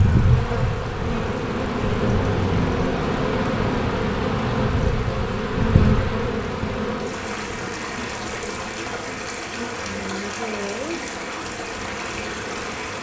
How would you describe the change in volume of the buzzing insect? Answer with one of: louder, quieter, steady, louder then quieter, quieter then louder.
quieter.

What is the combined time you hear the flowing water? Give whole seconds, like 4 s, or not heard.
13 s.